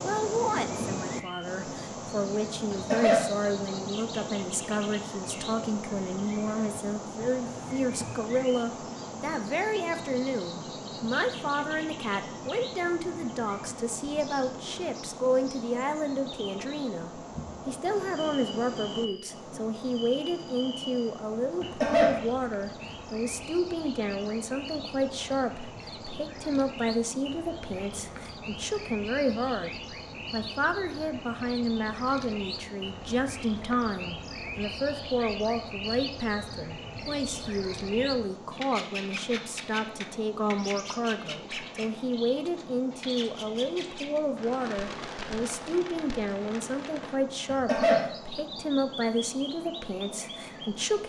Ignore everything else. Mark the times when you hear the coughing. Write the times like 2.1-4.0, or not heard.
2.7-3.3, 21.6-22.2, 47.5-48.0.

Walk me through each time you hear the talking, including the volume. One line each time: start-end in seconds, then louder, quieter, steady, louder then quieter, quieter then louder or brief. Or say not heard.
0.0-51.0 steady.